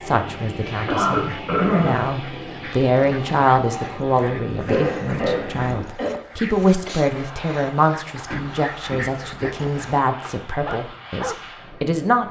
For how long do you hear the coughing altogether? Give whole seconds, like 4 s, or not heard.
4 s.